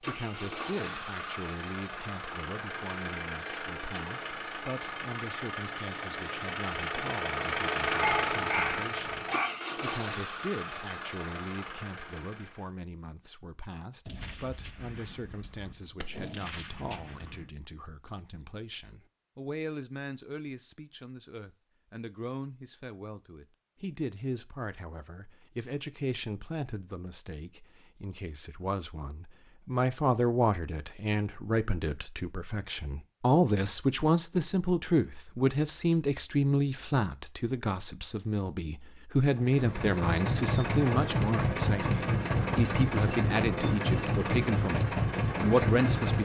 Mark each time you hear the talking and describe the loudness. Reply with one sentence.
You can hear the talking from 0.0 to 46.1 s, getting louder.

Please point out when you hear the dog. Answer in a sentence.
You can hear the dog from 7.9 to 9.5 s.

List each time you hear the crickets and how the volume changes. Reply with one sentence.
You can't hear the crickets here.